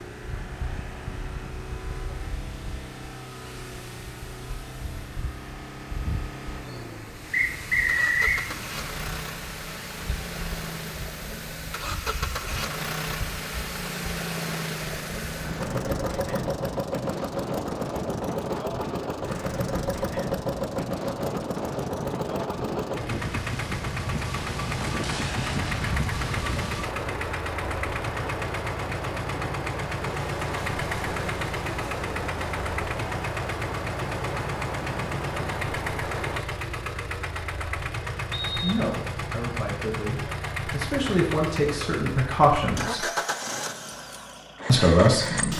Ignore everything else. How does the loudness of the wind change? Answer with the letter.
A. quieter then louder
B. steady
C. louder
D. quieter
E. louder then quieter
C.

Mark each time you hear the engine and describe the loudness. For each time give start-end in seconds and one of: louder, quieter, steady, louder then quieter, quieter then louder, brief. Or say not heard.
0.0-45.5 louder.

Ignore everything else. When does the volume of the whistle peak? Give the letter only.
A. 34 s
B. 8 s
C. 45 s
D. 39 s
B.